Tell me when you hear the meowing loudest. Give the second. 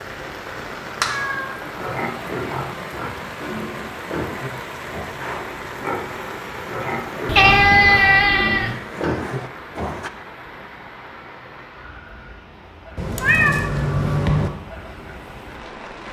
8 s.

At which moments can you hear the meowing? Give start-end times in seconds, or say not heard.
1.0-1.6, 7.2-8.8, 12.9-14.5.